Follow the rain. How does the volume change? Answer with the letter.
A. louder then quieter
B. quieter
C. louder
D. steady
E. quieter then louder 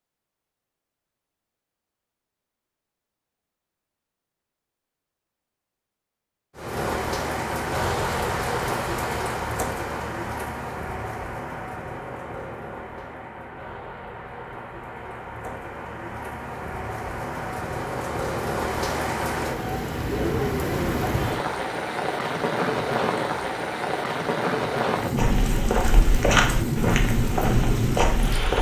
E.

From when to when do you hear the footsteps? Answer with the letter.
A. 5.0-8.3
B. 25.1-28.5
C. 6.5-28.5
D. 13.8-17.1
B.